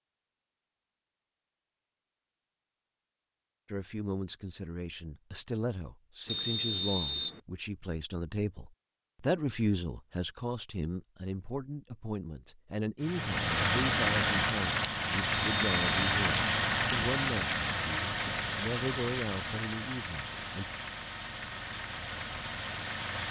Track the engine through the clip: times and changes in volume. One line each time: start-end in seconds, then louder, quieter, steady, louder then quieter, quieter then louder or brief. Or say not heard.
13.0-23.2 quieter.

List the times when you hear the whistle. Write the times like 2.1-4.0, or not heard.
6.2-7.4, 15.3-16.1.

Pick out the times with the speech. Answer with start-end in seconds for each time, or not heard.
3.6-20.6.